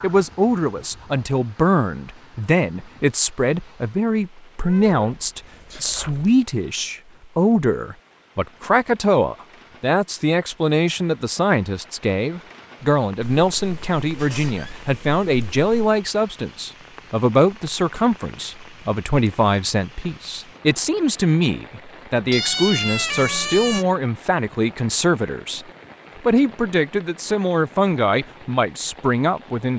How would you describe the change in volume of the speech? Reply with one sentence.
The loudness of the speech stays about the same.